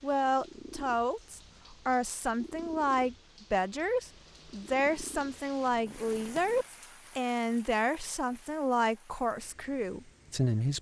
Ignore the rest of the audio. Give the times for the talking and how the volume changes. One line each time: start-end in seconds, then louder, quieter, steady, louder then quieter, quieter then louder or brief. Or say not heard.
0.0-10.7 steady.